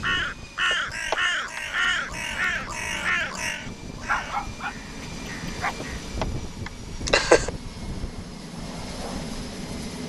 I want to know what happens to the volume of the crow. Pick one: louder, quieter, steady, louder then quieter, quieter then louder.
quieter.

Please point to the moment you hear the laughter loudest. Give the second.
7 s.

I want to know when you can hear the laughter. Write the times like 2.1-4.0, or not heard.
0.7-1.6, 5.8-7.5.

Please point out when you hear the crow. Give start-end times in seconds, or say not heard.
0.0-6.0.